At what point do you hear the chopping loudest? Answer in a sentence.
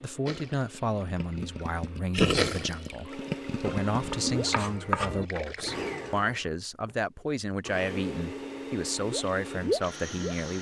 The loudest moment of the chopping is at 5 seconds.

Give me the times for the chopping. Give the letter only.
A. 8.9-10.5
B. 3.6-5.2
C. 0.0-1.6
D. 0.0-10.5
B.